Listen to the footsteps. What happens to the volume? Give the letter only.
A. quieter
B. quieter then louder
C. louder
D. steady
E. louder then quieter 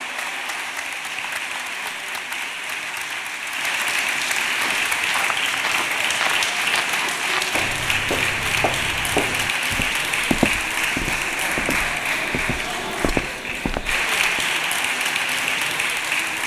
D.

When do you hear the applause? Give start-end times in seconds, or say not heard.
0.0-16.4.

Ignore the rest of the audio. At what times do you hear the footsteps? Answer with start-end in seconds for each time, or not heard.
4.5-14.4.